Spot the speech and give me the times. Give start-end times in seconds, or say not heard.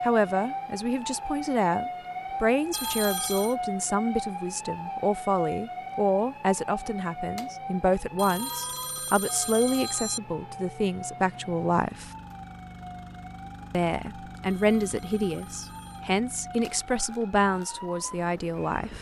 0.0-12.1, 13.7-18.9.